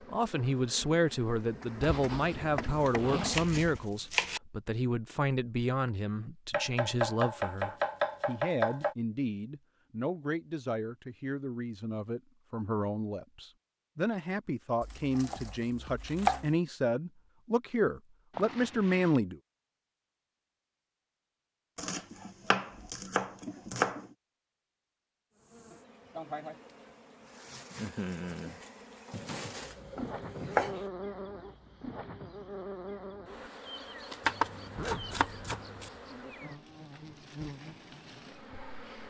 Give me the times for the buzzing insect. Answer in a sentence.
The buzzing insect can be heard from 0.0 to 3.9 s and from 25.3 to 39.0 s.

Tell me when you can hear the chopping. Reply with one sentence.
You can hear the chopping from 2.9 to 4.4 s, from 6.5 to 8.9 s, from 14.8 to 16.6 s, from 21.8 to 24.0 s, from 29.1 to 30.8 s and from 34.2 to 35.9 s.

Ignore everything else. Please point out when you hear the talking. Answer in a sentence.
You can hear the talking from 0.1 to 19.4 s.